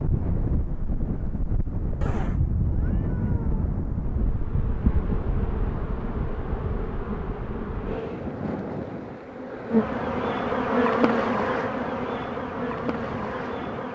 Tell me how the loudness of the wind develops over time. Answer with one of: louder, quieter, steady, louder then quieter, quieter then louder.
quieter.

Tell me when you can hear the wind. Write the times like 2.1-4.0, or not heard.
0.0-13.9.